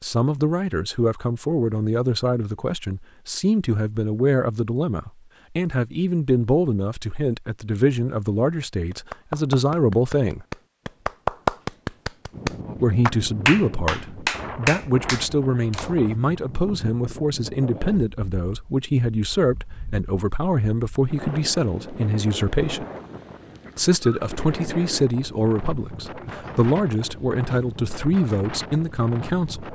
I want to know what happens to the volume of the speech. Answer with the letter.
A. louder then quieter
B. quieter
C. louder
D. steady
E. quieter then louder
D.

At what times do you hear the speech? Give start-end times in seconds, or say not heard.
0.0-10.4, 12.8-22.9, 23.8-29.7.